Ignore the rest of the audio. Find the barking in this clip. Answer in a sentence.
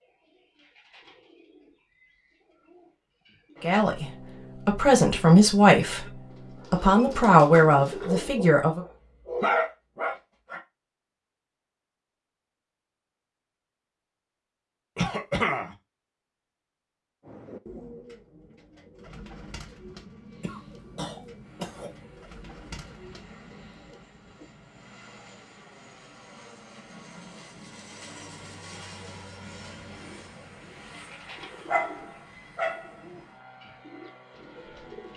The barking can be heard from 8.0 to 10.6 s and from 31.6 to 32.9 s.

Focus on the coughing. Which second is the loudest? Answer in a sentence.
The volume of the coughing peaks at 15 seconds.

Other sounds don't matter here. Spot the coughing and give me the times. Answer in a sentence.
The coughing can be heard from 14.9 to 15.8 s and from 20.4 to 21.9 s.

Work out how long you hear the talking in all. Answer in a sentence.
You can hear the talking for 5 seconds altogether.